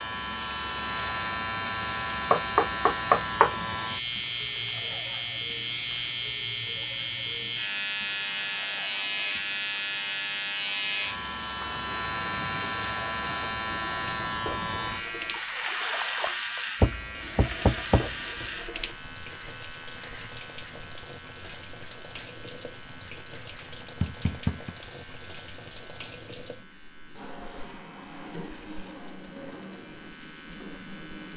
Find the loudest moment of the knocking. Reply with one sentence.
The loudest moment of the knocking is at 3 seconds.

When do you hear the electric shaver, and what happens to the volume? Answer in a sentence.
You can hear the electric shaver from 0.0 to 31.3 s, getting quieter.